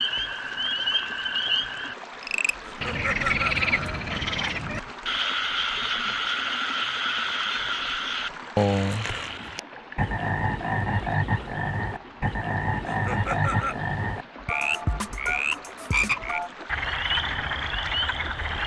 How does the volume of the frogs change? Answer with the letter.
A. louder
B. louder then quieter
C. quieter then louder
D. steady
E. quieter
D.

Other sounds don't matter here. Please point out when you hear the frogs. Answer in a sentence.
The frogs can be heard from 0.0 to 18.6 s.